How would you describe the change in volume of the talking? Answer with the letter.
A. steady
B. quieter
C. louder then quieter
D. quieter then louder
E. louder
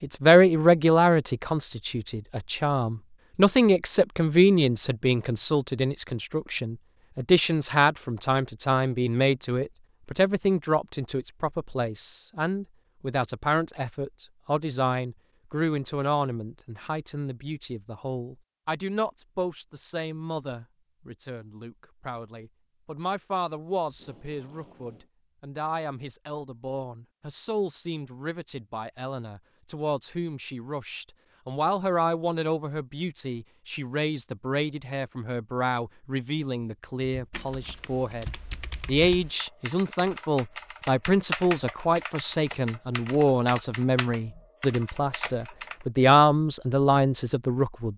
D.